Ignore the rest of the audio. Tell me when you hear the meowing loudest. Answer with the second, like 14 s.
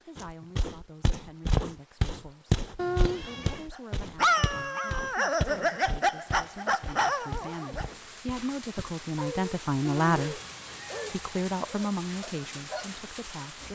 3 s.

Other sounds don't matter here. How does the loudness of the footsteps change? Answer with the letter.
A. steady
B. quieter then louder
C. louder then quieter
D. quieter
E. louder
D.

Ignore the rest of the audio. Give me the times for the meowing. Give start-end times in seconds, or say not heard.
2.8-3.6, 9.8-11.2.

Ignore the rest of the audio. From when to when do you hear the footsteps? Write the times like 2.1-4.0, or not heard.
0.1-9.1.